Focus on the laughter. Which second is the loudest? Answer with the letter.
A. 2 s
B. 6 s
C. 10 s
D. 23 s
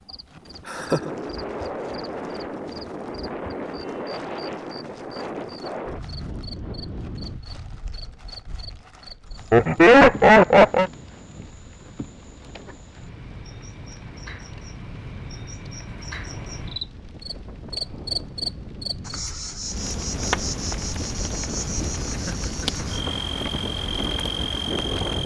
C.